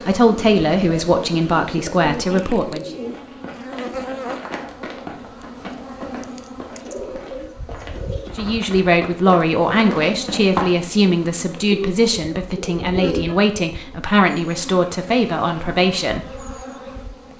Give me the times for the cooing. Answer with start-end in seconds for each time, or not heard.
0.2-3.2, 6.8-8.3, 11.7-13.6.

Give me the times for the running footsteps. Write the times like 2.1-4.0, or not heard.
3.0-10.7.